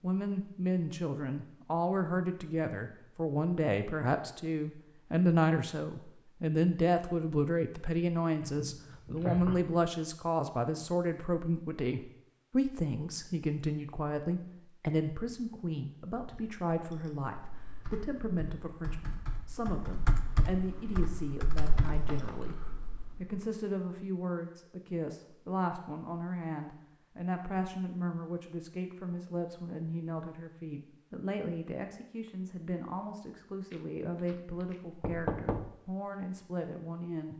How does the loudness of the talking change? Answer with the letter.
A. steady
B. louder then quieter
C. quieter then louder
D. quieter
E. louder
D.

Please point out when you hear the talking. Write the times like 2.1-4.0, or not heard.
0.0-37.3.